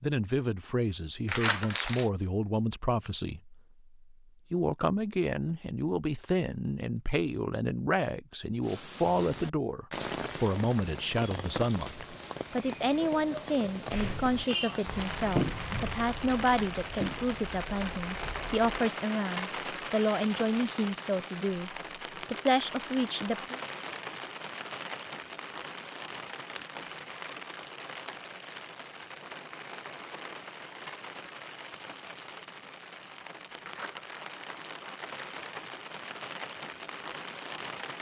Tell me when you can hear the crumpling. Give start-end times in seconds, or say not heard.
1.2-2.1, 33.6-35.6.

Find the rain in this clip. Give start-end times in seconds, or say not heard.
8.6-37.9.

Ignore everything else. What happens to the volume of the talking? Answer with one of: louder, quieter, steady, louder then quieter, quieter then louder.
steady.